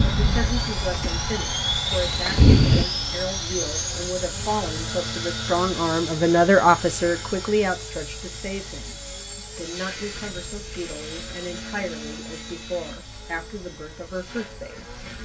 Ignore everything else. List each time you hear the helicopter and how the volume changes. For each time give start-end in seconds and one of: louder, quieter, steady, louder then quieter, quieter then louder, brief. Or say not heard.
0.0-15.2 quieter.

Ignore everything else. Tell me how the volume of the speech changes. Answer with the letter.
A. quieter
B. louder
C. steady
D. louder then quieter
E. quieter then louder
D.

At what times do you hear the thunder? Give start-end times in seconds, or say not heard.
1.9-2.9.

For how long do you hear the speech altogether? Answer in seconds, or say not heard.
15 s.